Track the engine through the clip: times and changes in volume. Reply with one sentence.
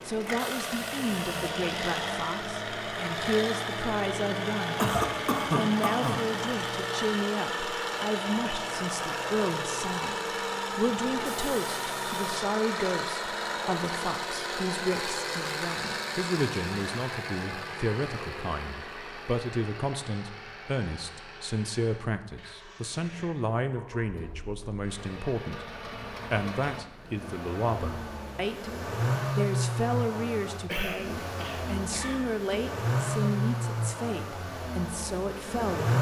The engine can be heard from 0.0 to 35.9 s, getting quieter then louder.